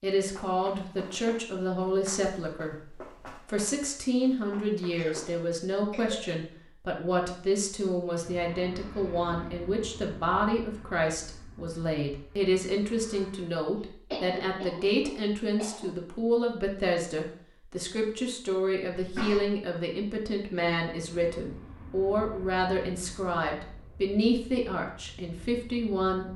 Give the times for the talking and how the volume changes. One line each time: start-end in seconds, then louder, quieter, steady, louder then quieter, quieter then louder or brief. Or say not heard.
0.0-26.3 steady.